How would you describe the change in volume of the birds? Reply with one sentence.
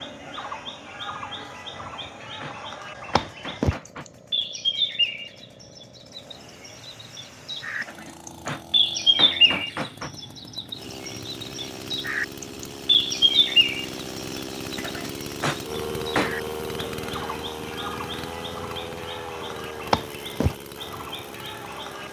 The loudness of the birds goes up, then down.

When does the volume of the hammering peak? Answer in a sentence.
The loudest moment of the hammering is at 16 seconds.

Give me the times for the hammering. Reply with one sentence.
The hammering can be heard from 1.8 to 4.0 s, from 7.8 to 10.1 s and from 14.8 to 16.4 s.